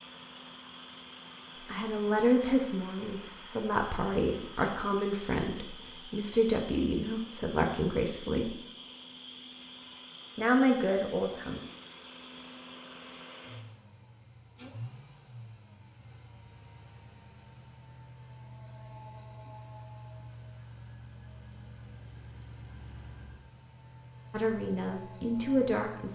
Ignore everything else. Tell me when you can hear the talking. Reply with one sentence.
The talking can be heard from 1.6 to 8.6 s, from 10.3 to 11.6 s and from 24.3 to 26.0 s.